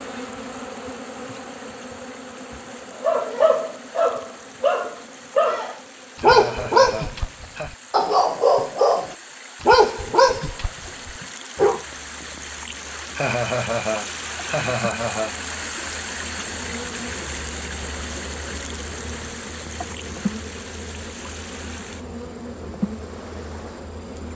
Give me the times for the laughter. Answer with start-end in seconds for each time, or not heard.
6.2-7.8, 13.2-15.4.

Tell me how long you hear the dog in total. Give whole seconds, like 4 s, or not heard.
9 s.